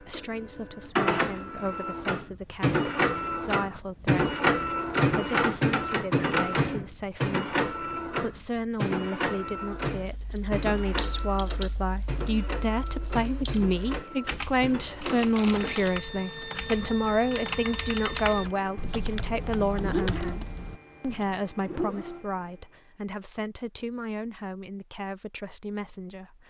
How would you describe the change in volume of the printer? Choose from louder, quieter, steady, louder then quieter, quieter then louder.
quieter.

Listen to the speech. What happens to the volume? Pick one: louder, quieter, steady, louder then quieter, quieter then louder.
louder then quieter.